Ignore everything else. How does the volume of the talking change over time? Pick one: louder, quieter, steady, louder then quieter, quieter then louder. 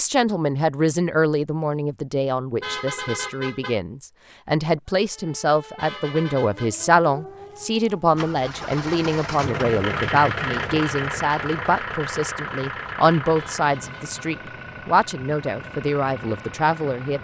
steady.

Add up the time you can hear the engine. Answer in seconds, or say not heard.
9 s.